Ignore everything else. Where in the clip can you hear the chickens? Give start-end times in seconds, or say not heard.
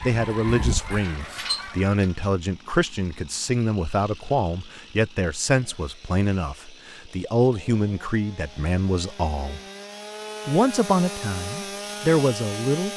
0.0-2.2.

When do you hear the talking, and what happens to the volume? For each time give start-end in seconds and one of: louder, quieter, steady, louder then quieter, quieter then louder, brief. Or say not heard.
0.0-9.6 steady
10.4-12.9 brief.